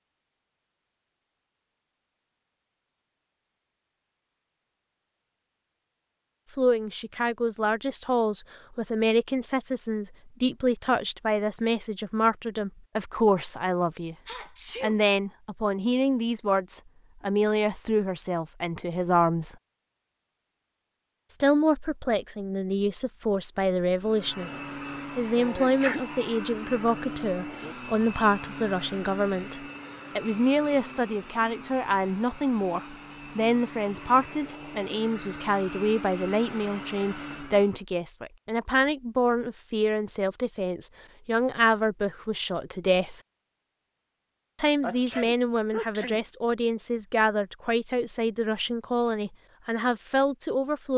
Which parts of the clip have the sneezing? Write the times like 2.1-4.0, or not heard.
14.2-15.0, 25.4-26.0, 44.8-46.2.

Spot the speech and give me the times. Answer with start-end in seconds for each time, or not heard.
6.5-14.2, 14.8-19.6, 21.3-43.1, 44.5-50.9.